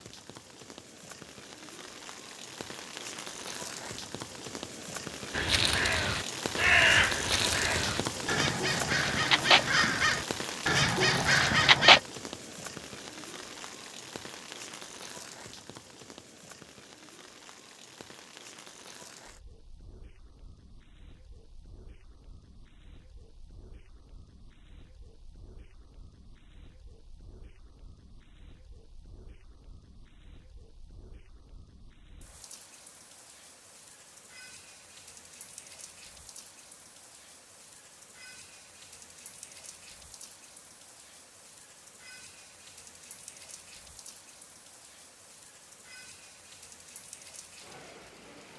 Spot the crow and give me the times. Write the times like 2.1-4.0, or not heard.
5.3-12.0.